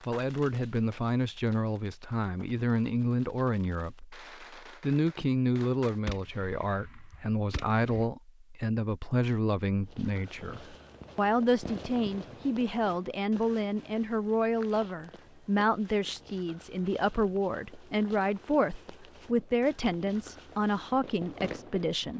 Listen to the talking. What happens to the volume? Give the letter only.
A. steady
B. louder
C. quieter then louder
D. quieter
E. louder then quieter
A.